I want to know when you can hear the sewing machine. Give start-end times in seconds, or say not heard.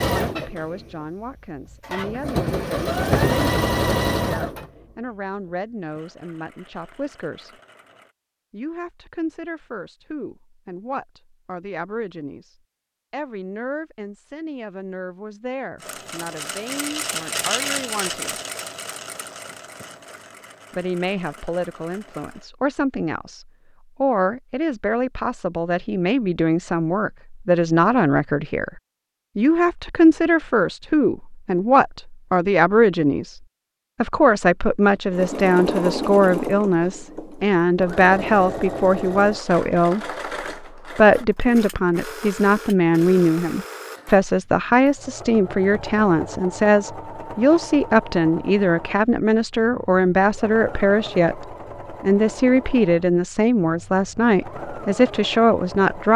0.0-8.2, 15.8-22.4, 35.1-56.1.